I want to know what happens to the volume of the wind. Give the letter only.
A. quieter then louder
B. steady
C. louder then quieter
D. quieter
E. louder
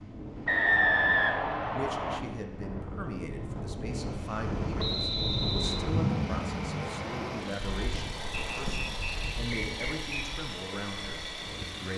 C.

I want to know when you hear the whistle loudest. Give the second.
1 s.